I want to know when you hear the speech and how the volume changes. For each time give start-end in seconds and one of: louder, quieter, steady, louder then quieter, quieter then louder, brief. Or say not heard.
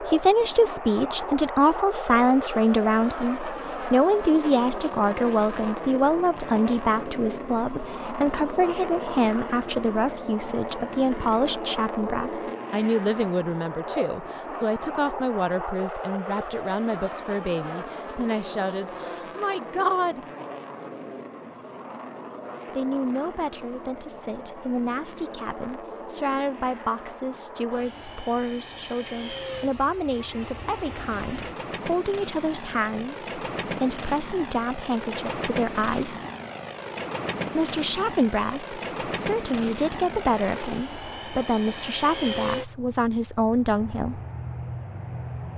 0.0-20.2 quieter
22.7-36.1 steady
37.5-44.2 steady.